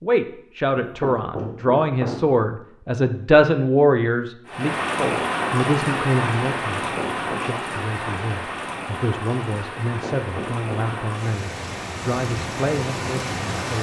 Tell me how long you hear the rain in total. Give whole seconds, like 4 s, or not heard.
9 s.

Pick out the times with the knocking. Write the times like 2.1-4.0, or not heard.
0.8-2.4, 6.7-7.5, 9.8-10.9.